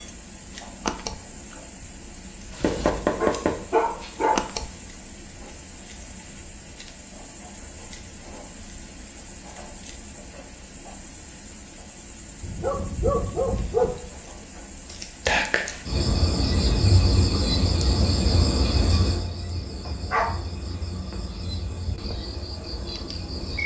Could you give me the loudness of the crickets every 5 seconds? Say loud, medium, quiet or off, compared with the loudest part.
medium, quiet, quiet, loud, medium.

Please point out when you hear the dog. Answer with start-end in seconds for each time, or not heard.
2.6-4.4, 12.4-13.9, 19.9-21.1.